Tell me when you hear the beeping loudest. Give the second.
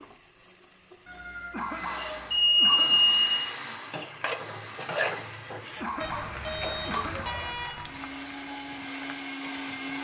3 s.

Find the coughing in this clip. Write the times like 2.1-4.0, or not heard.
1.5-3.0, 5.8-7.3.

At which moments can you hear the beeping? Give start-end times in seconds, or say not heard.
1.1-3.5, 6.0-8.0.